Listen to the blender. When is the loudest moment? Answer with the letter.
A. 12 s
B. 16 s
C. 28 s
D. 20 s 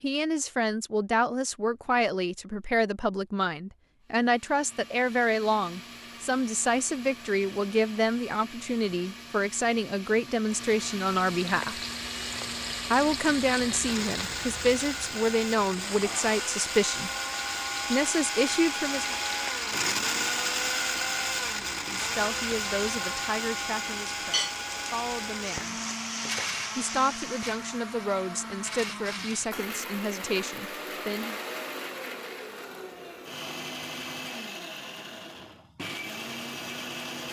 D.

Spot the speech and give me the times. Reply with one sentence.
The speech can be heard from 0.0 to 11.8 s, from 12.9 to 17.1 s, from 17.9 to 19.2 s, from 21.9 to 25.8 s and from 26.8 to 31.4 s.